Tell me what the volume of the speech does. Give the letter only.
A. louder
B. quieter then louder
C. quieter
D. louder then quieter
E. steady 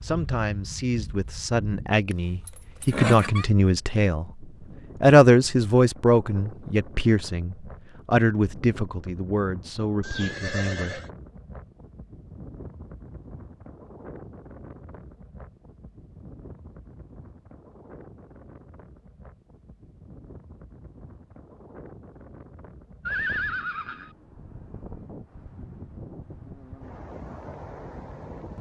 D.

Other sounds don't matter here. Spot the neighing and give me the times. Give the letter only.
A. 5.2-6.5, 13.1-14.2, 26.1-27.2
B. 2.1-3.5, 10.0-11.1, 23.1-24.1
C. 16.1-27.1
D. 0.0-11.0
B.